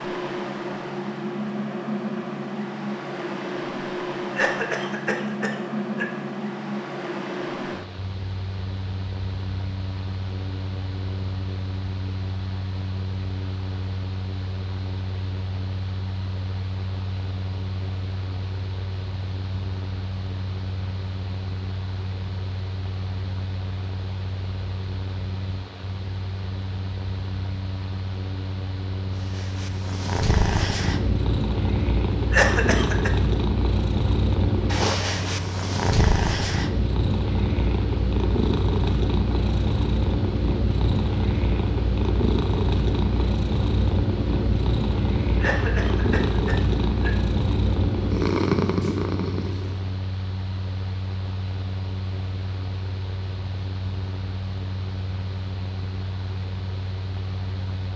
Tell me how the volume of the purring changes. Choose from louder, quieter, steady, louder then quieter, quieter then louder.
steady.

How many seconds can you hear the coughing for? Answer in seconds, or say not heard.
4 s.